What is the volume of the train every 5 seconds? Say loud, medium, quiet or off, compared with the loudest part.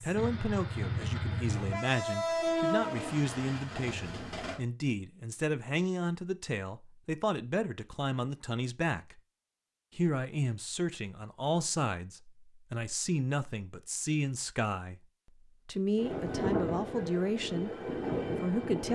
loud, off, off, loud.